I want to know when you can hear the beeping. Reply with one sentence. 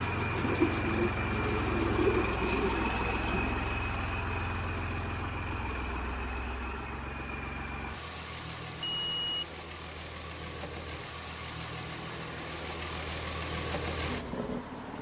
You can hear the beeping from 8.8 to 9.4 s.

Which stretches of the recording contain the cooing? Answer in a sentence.
The cooing can be heard from 0.0 to 3.6 s.